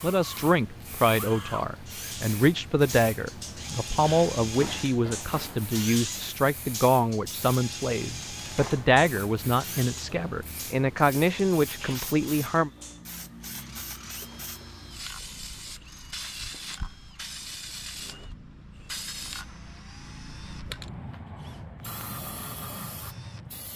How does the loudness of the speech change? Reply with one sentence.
The loudness of the speech stays about the same.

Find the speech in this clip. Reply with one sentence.
The speech can be heard from 0.0 to 12.7 s.